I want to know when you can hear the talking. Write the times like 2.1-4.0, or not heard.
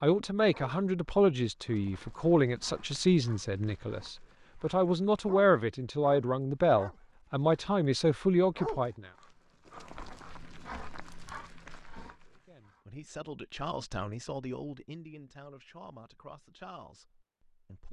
0.0-9.1, 12.3-17.8.